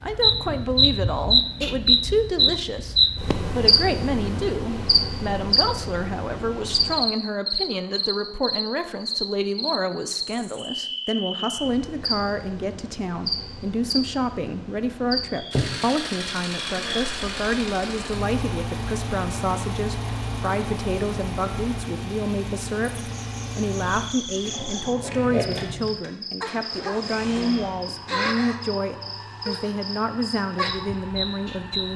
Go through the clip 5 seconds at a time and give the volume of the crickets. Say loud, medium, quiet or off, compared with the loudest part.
loud, medium, medium, medium, quiet, medium, medium.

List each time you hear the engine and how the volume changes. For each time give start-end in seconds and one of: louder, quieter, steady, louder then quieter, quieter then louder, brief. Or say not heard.
15.5-31.9 quieter.